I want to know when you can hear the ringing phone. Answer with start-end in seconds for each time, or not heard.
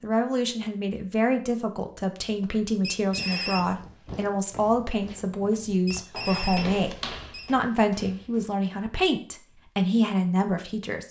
2.8-3.6, 5.8-7.5.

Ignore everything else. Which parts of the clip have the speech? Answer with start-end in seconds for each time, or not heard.
0.0-11.0.